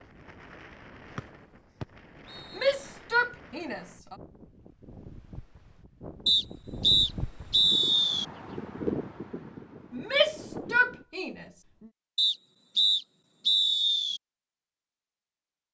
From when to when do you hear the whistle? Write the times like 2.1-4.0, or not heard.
1.1-2.8, 6.2-8.2, 12.2-14.2.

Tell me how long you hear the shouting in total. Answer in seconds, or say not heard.
3 s.